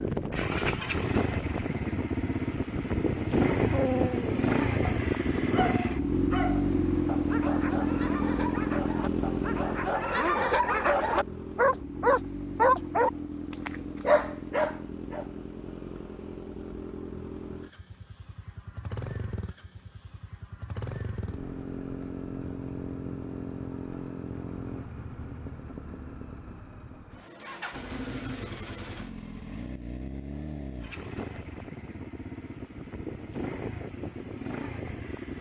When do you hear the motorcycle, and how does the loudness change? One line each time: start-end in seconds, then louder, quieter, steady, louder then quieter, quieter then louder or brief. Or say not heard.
0.0-35.3 quieter.